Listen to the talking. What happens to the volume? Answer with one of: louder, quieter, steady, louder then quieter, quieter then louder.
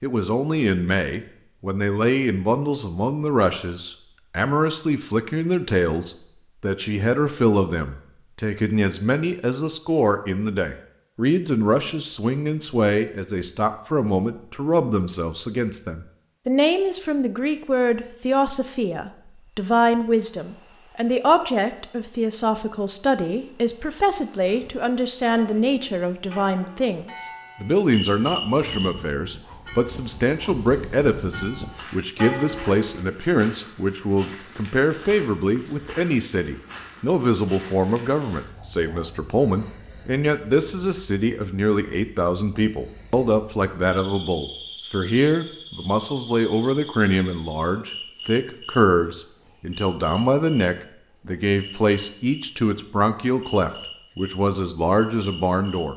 steady.